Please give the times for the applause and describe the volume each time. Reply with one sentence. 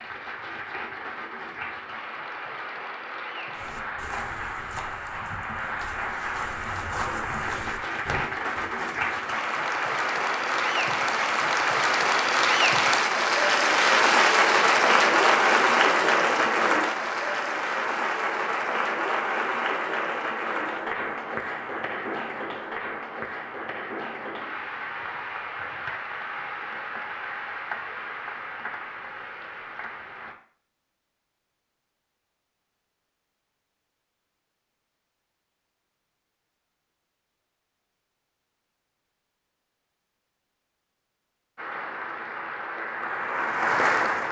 The applause can be heard from 0.0 to 30.4 s, getting louder then quieter; and briefly from 41.5 to 44.2 s.